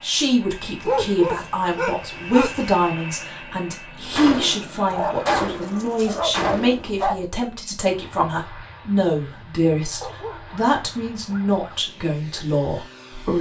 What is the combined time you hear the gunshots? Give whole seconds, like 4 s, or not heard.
3 s.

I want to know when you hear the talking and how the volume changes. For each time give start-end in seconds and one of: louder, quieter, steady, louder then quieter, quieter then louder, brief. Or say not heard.
0.0-13.3 steady.